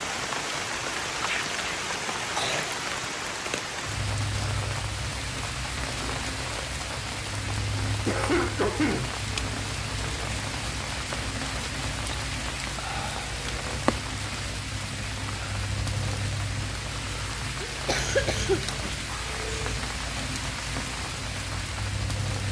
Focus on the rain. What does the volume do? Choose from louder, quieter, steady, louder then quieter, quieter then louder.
steady.